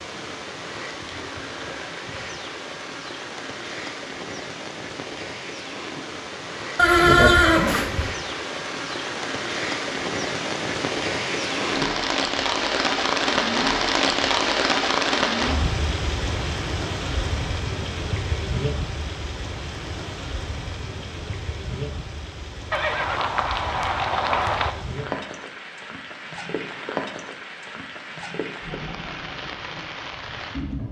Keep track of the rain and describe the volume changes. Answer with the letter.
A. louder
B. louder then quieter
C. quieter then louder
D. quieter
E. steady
B.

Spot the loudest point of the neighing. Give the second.
7 s.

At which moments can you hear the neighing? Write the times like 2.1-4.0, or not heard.
6.8-8.1, 22.7-24.8.